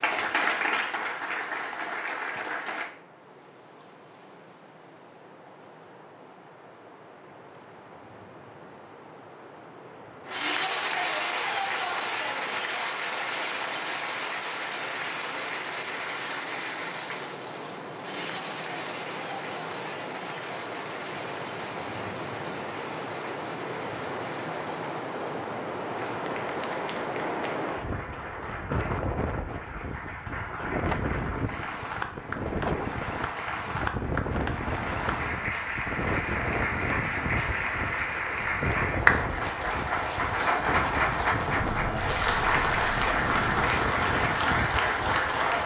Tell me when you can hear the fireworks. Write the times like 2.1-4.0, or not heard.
not heard.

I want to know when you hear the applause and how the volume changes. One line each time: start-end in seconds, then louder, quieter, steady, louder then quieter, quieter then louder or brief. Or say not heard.
0.0-2.9 brief
10.2-45.6 quieter then louder.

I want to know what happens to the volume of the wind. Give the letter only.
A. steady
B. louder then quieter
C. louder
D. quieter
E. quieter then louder
C.